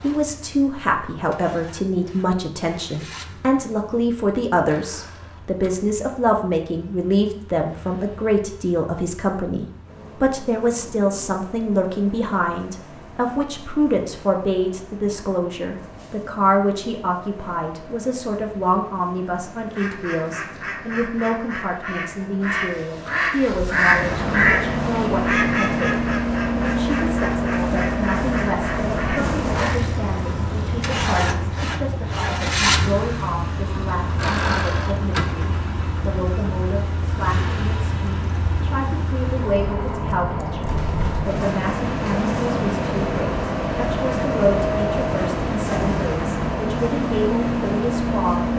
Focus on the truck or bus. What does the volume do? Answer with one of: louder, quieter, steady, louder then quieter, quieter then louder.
louder.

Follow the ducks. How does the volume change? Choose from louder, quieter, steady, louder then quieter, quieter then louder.
louder then quieter.